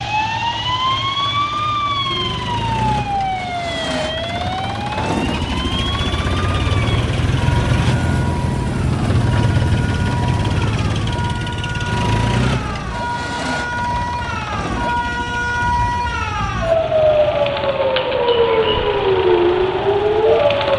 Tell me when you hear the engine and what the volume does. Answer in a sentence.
The engine can be heard from 0.0 to 20.7 s, getting louder then quieter.